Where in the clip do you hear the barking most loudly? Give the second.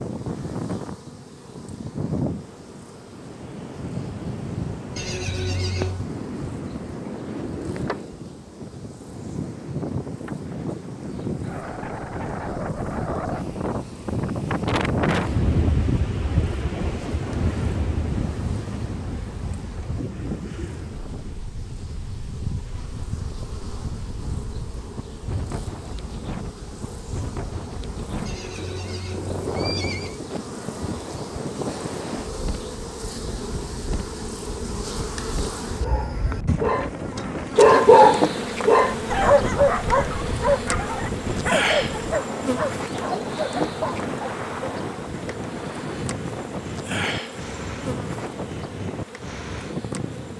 38 s.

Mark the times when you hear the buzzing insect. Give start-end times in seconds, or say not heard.
0.0-50.3.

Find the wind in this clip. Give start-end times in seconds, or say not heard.
0.0-50.3.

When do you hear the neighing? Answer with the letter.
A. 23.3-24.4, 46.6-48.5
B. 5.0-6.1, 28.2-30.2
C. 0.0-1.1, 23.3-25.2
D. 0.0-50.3
B.